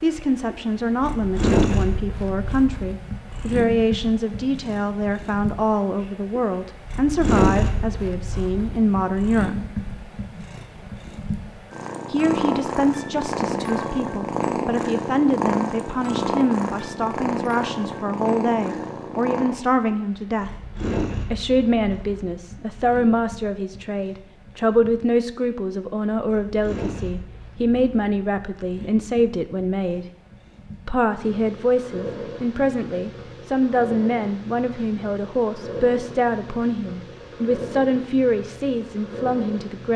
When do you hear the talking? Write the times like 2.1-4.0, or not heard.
0.0-9.6, 12.1-20.6, 21.2-30.1, 30.9-39.9.